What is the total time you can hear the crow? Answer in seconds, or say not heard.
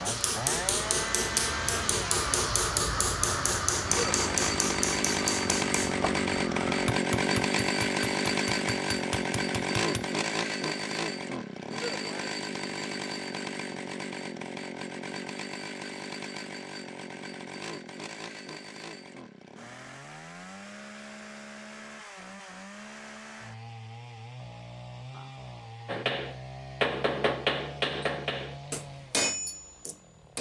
7 s.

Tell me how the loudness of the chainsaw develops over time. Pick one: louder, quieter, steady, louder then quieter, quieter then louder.
quieter.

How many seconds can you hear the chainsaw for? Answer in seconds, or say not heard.
30 s.